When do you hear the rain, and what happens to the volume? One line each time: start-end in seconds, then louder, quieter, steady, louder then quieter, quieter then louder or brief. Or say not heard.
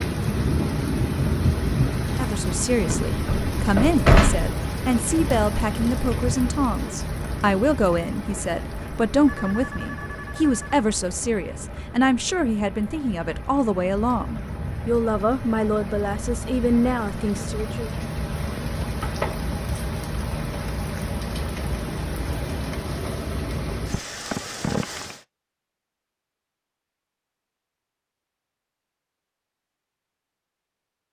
0.0-25.2 quieter then louder.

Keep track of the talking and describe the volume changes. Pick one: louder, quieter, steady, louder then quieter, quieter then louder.
steady.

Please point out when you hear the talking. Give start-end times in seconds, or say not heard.
2.0-17.9.